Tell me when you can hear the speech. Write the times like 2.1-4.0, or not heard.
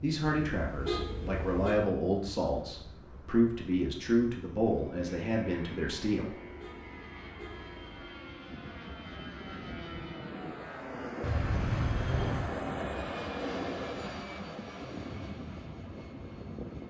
0.0-6.4.